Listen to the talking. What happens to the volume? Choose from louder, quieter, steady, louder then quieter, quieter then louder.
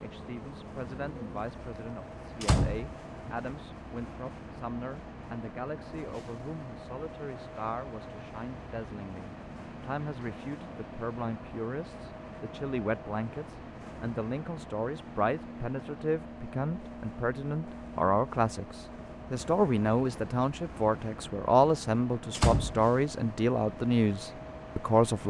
louder.